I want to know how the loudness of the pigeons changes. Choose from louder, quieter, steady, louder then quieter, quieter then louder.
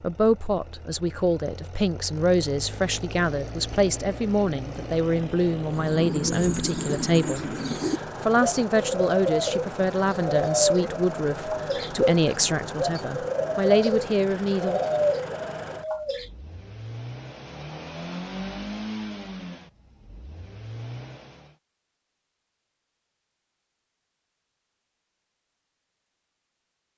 steady.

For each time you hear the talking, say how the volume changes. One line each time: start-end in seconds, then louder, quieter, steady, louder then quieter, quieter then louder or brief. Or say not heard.
0.0-14.8 steady.